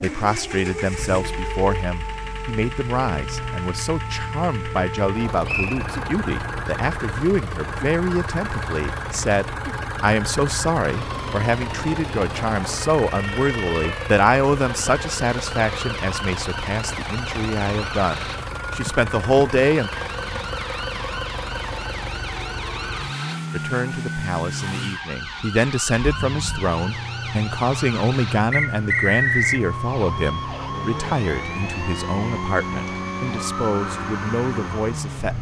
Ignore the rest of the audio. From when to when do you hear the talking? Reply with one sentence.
The talking can be heard from 0.0 to 19.9 s and from 23.5 to 35.3 s.